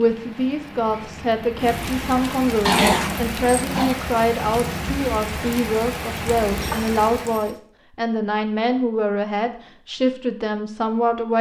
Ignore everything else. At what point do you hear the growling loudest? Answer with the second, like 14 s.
3 s.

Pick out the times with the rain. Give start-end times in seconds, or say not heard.
0.0-7.5.